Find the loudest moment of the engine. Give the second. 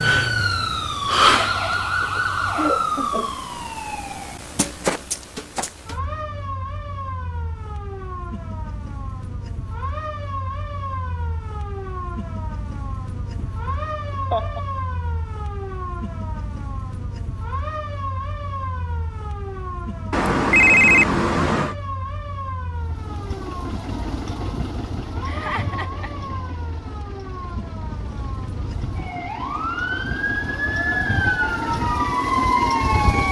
33 s.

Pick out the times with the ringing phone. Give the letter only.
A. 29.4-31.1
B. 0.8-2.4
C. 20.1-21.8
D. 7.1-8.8
C.